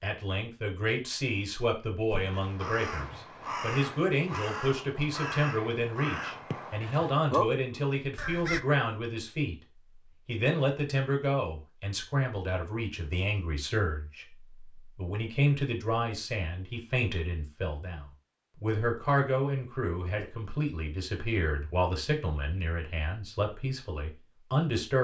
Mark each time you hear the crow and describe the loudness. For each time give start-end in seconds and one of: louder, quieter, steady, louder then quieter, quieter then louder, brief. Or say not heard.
2.1-8.6 louder.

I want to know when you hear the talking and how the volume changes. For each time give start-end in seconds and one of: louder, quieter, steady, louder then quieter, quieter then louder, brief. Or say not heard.
0.0-9.6 steady
10.2-24.9 steady.